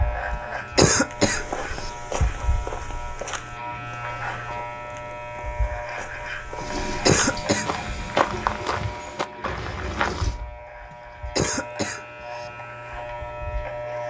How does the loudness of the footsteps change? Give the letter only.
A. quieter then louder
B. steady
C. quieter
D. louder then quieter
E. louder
A.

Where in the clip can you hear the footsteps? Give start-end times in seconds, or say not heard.
1.1-10.5.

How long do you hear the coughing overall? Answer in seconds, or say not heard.
4 s.